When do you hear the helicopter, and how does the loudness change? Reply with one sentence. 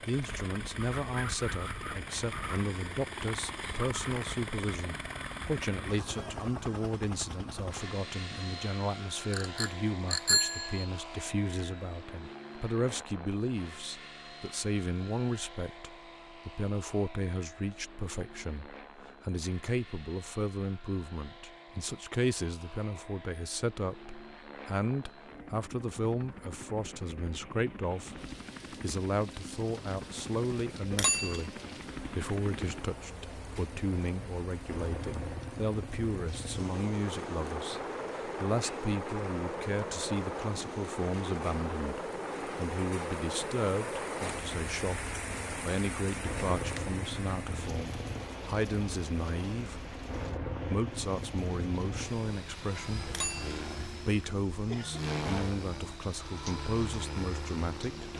The helicopter can be heard from 0.0 to 58.1 s, getting quieter then louder.